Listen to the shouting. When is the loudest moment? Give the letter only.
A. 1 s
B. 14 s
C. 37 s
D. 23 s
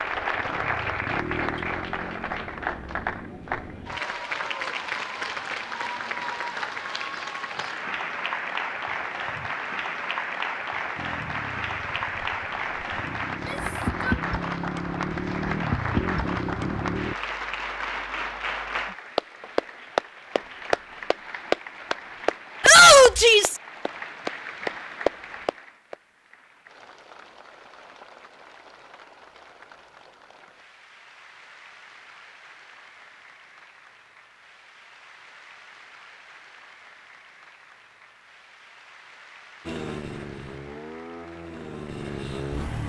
D.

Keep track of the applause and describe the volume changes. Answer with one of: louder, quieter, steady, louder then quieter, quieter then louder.
quieter.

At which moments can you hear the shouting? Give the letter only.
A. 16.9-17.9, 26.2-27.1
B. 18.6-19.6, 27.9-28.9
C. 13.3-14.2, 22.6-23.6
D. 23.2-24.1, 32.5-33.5
C.